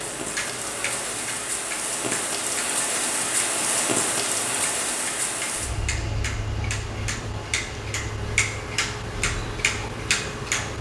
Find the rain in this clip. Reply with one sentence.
The rain can be heard from 0.0 to 10.7 s.